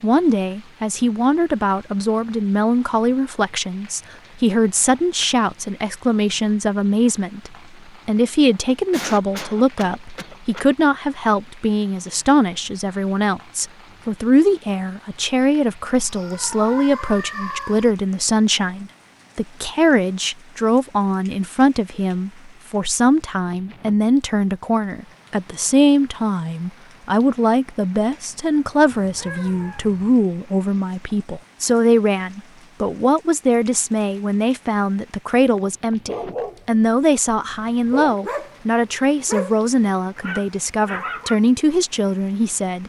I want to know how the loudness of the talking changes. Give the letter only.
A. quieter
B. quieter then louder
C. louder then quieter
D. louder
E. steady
E.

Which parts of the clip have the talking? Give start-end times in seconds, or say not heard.
0.0-42.8.